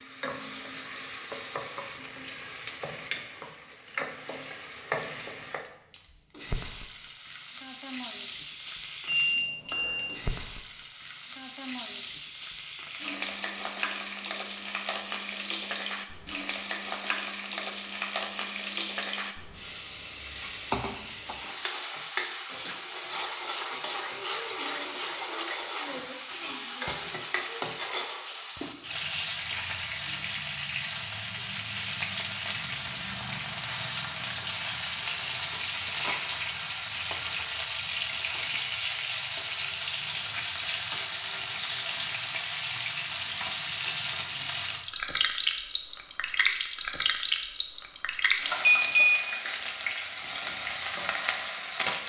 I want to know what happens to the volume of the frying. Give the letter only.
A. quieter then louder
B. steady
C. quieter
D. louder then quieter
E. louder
E.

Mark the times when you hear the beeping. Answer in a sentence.
You can hear the beeping from 9.1 to 10.1 s and from 48.6 to 49.2 s.